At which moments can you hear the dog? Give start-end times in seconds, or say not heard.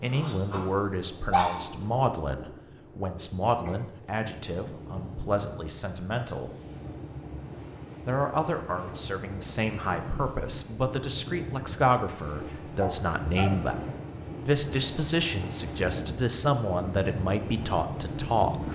0.1-2.1, 12.8-13.6.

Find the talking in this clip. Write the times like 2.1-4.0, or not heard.
0.0-6.5, 8.1-13.8, 14.4-18.6.